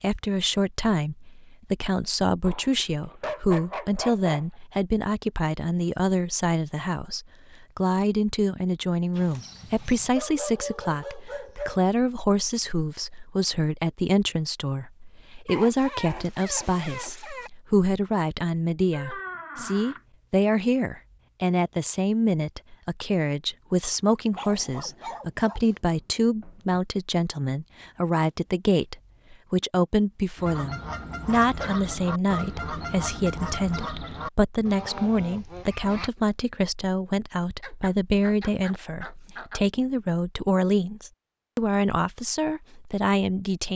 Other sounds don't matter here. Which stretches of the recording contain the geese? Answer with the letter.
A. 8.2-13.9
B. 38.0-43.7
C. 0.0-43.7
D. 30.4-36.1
D.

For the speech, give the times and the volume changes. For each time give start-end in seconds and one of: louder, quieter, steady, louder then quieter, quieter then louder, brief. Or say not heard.
0.0-43.7 steady.